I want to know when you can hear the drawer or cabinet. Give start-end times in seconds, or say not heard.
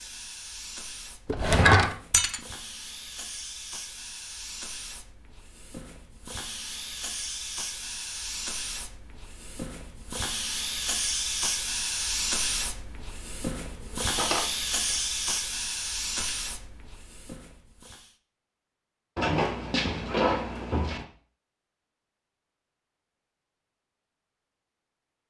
1.2-1.9, 13.9-15.4, 19.1-21.1.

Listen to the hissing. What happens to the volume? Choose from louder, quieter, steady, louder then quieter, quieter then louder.
louder.